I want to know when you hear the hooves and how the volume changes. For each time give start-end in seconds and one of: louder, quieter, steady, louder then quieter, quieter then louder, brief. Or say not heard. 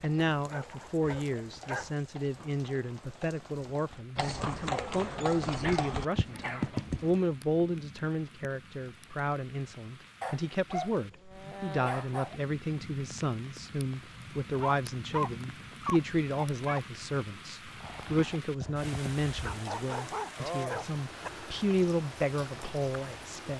0.0-7.3 louder
17.7-19.6 brief.